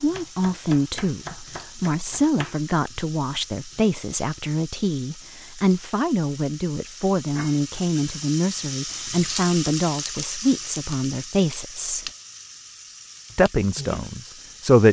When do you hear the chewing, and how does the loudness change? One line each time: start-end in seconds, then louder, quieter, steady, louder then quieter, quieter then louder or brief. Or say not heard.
not heard.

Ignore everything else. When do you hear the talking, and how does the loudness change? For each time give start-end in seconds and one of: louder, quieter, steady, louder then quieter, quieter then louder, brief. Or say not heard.
0.0-12.1 steady
13.3-14.8 brief.